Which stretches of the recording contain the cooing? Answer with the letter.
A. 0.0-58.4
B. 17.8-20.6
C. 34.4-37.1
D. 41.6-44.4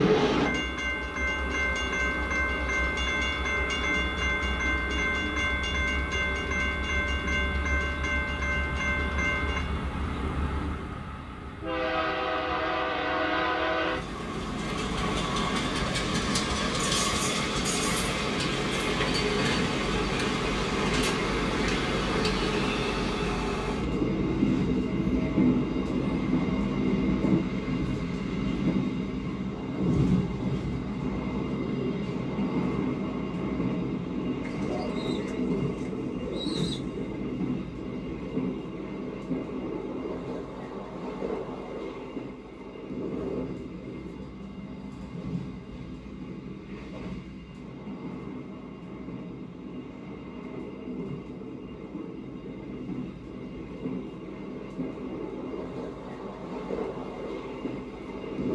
C.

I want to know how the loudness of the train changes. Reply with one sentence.
The volume of the train goes down.